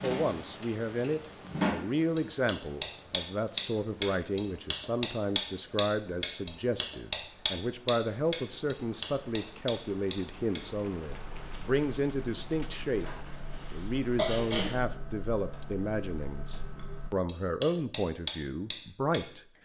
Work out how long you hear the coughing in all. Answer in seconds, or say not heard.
2 s.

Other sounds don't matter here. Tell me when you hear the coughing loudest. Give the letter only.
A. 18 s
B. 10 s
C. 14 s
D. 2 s
C.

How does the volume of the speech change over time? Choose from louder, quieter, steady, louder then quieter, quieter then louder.
steady.